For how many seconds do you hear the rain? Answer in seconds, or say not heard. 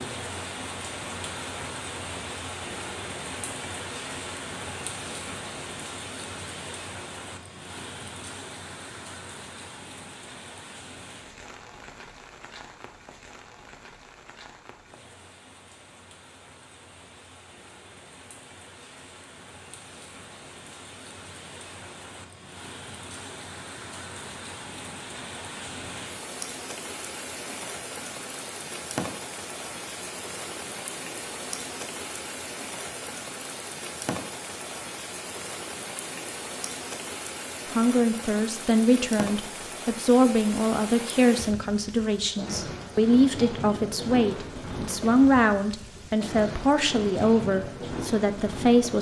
49 s.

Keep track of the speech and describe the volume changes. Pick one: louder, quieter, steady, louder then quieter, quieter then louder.
steady.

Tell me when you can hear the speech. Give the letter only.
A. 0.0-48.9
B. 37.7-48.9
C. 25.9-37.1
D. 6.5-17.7
B.